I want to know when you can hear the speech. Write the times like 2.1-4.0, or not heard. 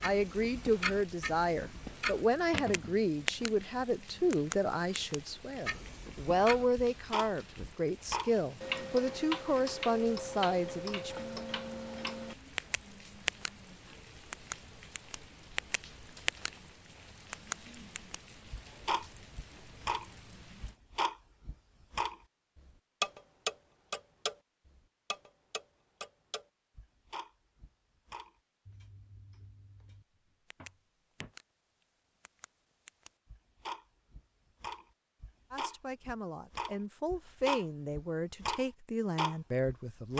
0.0-11.2, 35.5-40.1.